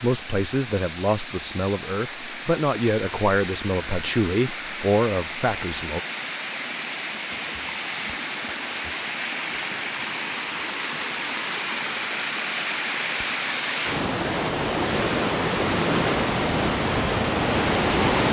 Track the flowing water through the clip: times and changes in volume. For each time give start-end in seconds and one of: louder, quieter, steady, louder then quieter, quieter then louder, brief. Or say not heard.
0.0-18.2 louder.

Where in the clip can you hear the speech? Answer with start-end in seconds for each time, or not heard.
0.0-6.0.